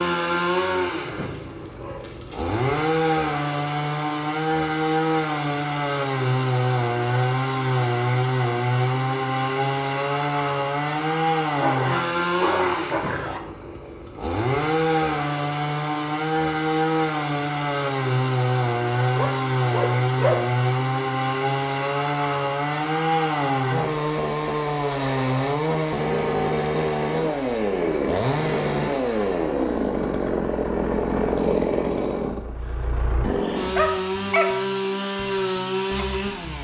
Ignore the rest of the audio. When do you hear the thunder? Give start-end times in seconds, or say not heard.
not heard.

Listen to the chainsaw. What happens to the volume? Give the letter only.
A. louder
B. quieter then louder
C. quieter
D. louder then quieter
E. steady
E.